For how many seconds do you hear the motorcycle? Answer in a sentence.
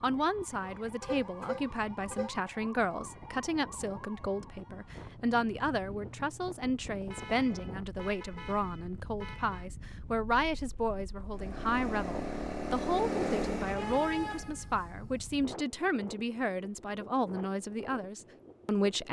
The motorcycle can be heard for 3 seconds in total.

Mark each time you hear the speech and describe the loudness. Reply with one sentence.
The speech can be heard from 0.0 to 19.0 s, at a steady volume.